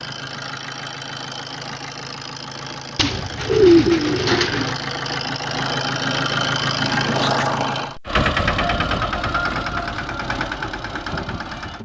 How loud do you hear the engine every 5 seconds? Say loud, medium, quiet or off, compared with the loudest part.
medium, loud, medium.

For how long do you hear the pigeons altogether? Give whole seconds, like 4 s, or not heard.
2 s.